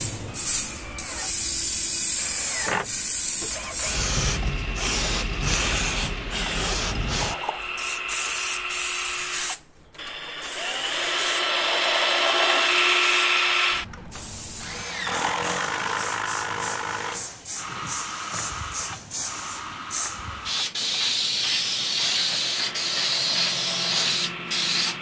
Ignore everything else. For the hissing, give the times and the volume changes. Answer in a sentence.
You can hear the hissing from 0.0 to 24.9 s, getting quieter then louder.